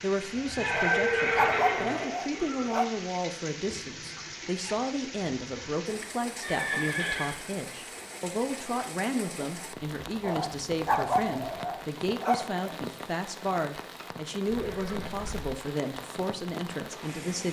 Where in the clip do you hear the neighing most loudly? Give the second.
1 s.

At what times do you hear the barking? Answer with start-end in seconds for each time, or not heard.
0.7-2.9, 10.2-12.8.